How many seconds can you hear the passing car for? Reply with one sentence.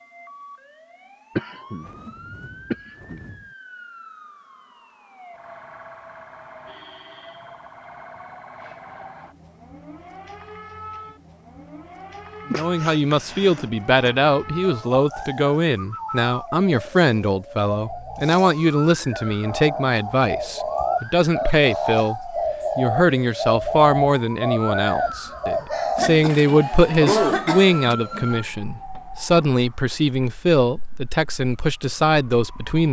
You can't hear the passing car here.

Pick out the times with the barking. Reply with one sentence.
The barking can't be heard in this clip.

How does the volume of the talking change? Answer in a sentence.
The volume of the talking stays about the same.